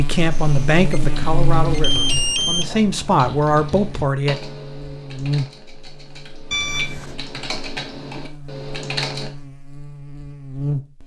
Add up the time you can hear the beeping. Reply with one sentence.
The beeping can be heard for 3 seconds in total.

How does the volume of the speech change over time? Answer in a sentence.
The volume of the speech goes down, then up.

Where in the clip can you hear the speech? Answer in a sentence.
The speech can be heard from 0.0 to 4.3 s.